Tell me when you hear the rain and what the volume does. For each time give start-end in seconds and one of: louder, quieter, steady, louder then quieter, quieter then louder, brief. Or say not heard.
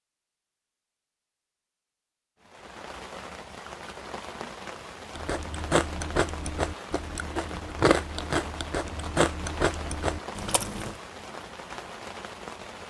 2.4-12.8 steady.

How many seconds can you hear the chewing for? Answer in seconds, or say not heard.
6 s.